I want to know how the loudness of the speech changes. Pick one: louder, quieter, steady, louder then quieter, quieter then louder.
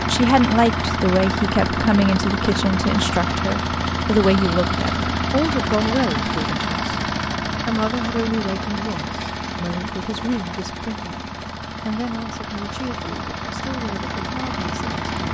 quieter.